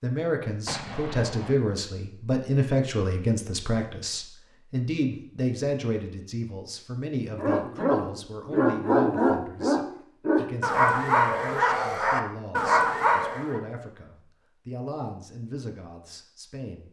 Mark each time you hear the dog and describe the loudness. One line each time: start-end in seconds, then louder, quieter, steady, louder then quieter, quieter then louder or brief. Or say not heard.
7.3-13.6 steady.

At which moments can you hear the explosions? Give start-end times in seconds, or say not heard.
0.7-1.6.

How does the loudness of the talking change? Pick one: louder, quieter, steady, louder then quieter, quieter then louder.
quieter.